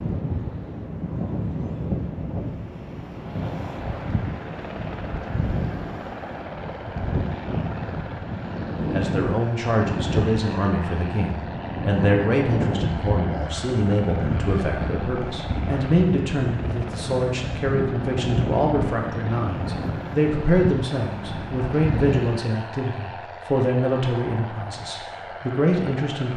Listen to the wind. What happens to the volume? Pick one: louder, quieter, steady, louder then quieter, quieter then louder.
steady.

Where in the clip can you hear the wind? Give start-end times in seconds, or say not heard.
0.0-22.4.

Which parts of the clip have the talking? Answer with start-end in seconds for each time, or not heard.
8.9-26.3.